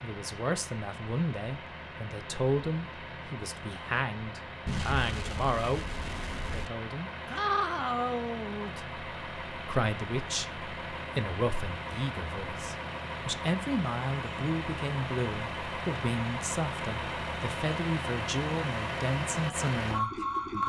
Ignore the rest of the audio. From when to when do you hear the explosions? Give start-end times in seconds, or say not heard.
4.7-6.7.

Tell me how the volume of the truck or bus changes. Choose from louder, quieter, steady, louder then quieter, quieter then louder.
louder.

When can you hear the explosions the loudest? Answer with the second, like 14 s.
5 s.